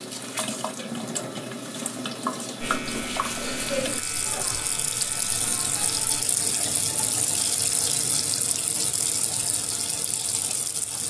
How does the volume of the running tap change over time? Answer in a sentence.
The volume of the running tap stays about the same.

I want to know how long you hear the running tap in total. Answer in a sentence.
The running tap can be heard for 11 seconds in total.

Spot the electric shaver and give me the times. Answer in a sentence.
You can hear the electric shaver from 2.6 to 6.2 s.